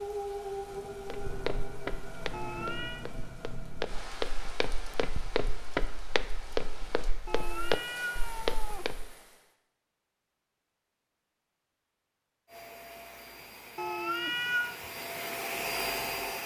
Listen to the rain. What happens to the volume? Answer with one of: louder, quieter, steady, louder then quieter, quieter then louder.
quieter.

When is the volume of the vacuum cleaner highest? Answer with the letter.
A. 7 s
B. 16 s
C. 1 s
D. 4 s
B.